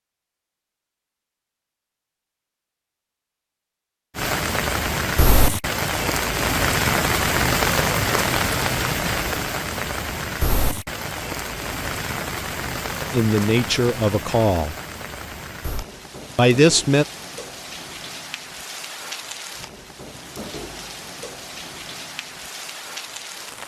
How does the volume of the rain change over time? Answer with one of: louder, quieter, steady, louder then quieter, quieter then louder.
quieter.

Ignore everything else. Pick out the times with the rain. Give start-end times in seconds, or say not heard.
4.2-23.6.